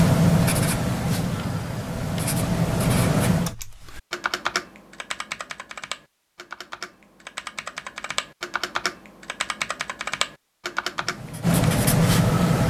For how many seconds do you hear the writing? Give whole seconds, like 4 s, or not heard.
5 s.